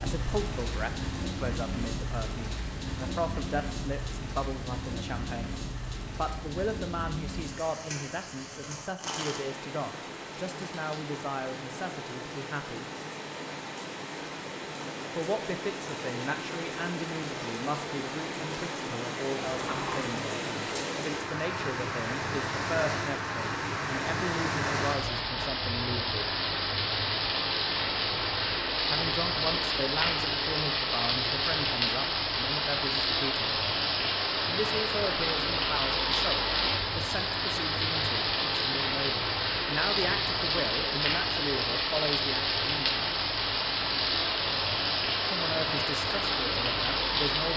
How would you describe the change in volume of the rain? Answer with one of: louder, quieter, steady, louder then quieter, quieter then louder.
louder.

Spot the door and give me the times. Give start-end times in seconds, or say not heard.
19.4-20.1.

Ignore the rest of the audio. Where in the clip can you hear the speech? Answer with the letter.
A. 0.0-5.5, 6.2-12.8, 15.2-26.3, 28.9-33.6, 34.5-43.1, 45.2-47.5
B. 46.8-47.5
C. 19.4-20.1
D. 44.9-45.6
A.